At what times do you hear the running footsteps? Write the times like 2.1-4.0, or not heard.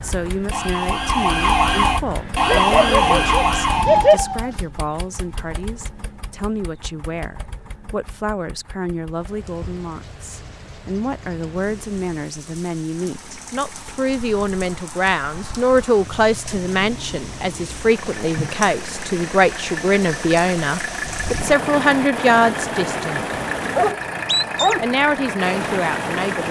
not heard.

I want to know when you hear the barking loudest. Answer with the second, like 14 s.
4 s.